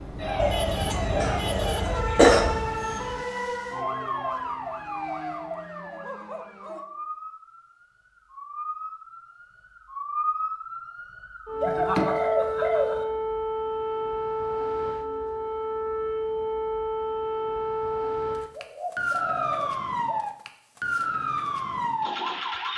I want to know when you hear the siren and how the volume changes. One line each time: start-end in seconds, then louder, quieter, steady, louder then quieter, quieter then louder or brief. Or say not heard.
0.1-22.7 quieter then louder.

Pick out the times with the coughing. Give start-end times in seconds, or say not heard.
1.2-2.5.